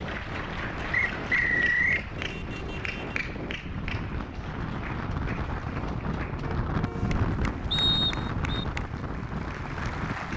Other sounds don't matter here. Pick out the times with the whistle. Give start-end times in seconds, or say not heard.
0.9-2.0, 7.7-8.7.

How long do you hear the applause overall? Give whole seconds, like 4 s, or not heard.
10 s.